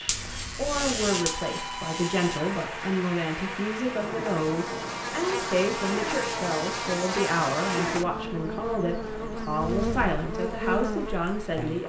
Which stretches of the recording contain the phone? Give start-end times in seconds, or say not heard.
1.1-2.6.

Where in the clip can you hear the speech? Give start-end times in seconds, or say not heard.
0.0-11.8.